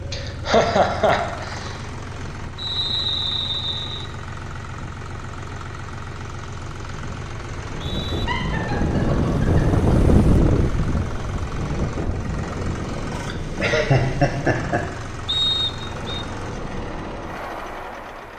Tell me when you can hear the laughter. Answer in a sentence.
The laughter can be heard from 0.1 to 1.8 s, from 8.1 to 10.2 s and from 13.2 to 14.8 s.